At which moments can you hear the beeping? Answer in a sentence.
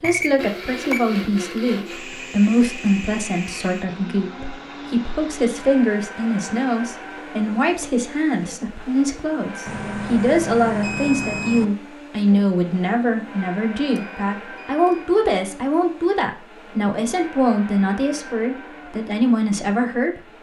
You can hear the beeping from 0.0 to 1.1 s, from 9.7 to 11.7 s and from 13.8 to 15.1 s.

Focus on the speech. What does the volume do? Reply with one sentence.
The volume of the speech stays about the same.